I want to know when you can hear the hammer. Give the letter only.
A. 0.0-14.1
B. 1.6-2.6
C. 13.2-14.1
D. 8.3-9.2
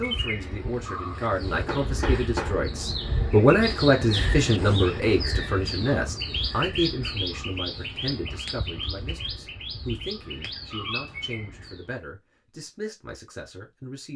B.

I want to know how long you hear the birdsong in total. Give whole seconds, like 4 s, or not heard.
12 s.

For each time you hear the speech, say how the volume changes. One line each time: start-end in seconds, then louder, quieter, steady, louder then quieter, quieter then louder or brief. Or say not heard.
0.0-14.1 louder then quieter.